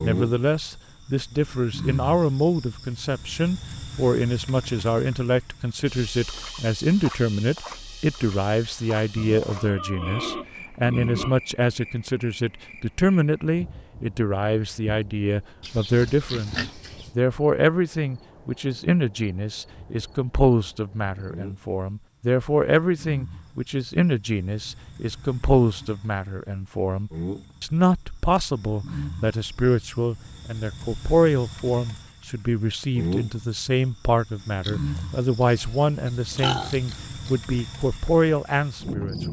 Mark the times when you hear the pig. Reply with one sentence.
You can hear the pig from 9.2 to 11.3 s, from 15.6 to 17.1 s and from 34.6 to 37.4 s.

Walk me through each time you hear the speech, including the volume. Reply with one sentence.
You can hear the speech from 0.0 to 39.2 s, at a steady volume.